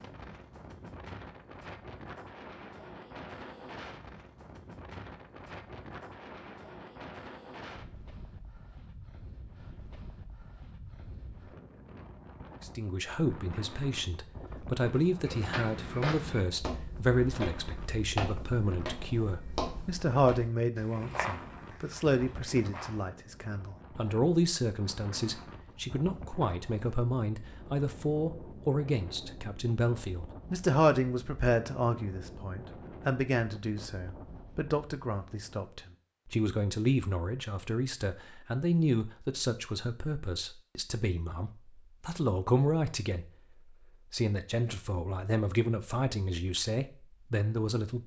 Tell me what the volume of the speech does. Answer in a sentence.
The volume of the speech stays about the same.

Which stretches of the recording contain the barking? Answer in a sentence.
You can't hear the barking here.